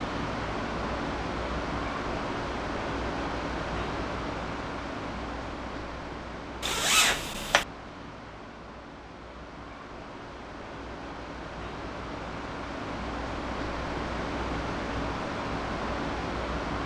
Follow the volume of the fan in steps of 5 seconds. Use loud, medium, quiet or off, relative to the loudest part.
loud, medium, loud, loud.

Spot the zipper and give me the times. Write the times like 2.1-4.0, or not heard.
6.6-7.7.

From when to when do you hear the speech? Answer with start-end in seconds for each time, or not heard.
not heard.